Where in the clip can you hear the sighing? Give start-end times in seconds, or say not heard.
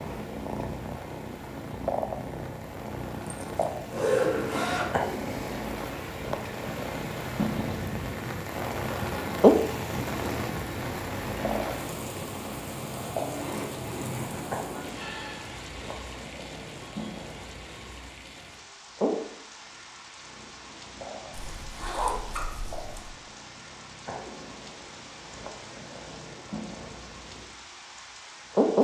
14.9-15.5.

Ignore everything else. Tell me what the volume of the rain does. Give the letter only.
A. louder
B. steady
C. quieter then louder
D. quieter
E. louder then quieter
E.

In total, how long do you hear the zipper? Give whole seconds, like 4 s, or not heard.
5 s.